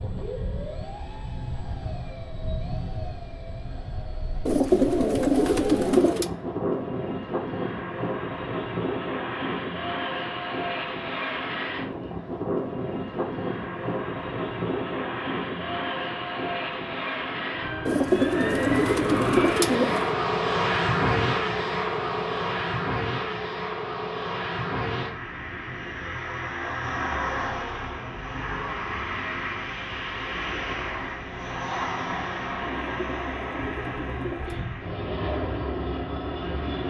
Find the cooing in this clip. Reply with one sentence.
You can hear the cooing from 4.5 to 6.3 s, from 17.9 to 20.1 s and from 32.7 to 34.7 s.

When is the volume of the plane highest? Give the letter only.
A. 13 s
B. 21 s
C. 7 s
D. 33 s
B.